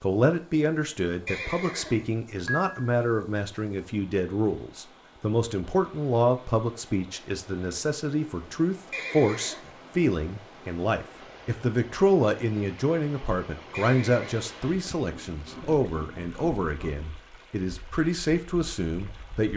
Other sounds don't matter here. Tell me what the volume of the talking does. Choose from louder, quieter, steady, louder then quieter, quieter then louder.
steady.